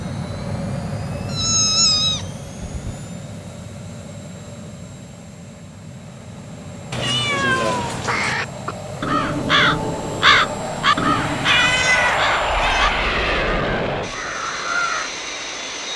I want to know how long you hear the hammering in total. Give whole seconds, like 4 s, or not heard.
not heard.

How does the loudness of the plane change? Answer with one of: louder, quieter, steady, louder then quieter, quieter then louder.
quieter then louder.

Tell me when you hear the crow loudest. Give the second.
10 s.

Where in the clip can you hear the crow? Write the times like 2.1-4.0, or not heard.
7.8-15.1.